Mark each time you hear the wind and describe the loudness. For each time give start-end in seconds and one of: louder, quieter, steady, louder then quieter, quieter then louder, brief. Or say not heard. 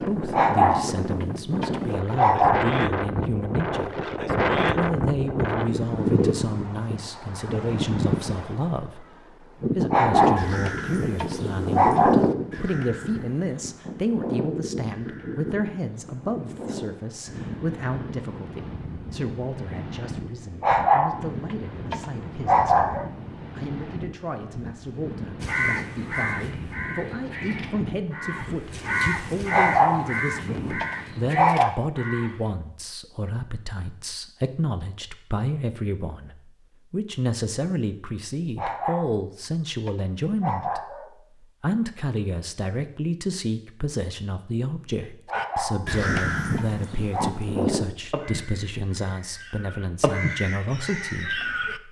0.0-31.4 quieter.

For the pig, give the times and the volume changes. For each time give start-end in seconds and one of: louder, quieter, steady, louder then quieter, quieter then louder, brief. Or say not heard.
not heard.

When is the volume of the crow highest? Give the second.
12 s.